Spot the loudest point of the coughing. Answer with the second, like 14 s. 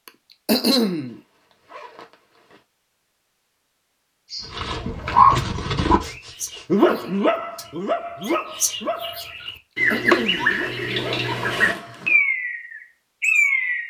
1 s.